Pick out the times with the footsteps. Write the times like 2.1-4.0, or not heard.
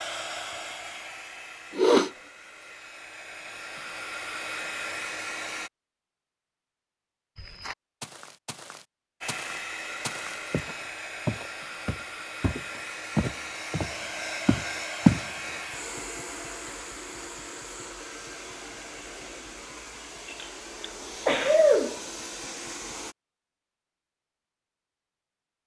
7.3-15.2.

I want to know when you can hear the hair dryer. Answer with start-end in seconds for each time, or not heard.
0.0-5.7, 9.2-23.1.